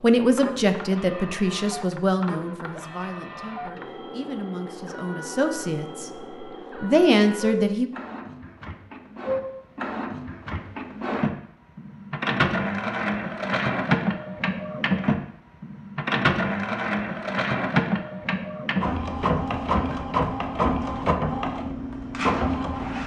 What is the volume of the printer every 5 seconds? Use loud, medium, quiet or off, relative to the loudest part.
quiet, medium, loud, loud, loud.